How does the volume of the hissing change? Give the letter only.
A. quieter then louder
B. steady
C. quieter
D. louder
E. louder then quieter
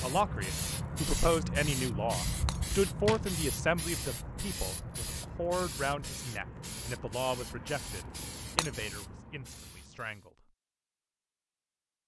C.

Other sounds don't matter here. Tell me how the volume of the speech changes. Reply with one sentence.
The loudness of the speech goes down.